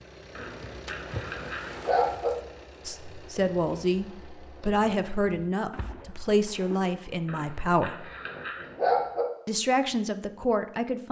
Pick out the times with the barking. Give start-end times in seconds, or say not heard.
0.3-2.3, 7.2-9.2.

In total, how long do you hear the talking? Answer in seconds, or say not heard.
7 s.